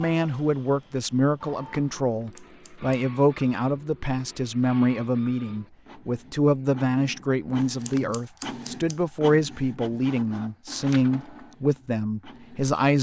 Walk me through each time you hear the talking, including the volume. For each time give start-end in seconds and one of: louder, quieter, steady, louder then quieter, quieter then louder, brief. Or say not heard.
0.0-12.9 steady.